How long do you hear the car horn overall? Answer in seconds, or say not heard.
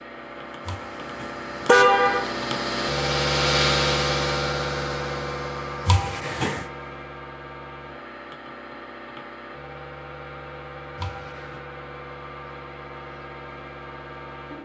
3 s.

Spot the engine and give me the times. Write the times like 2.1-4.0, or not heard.
0.0-14.5.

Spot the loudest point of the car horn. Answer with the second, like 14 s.
2 s.